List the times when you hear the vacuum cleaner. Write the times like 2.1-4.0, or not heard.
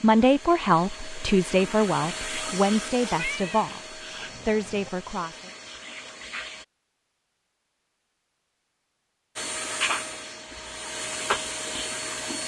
0.0-6.7, 9.3-12.4.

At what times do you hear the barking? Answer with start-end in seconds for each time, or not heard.
not heard.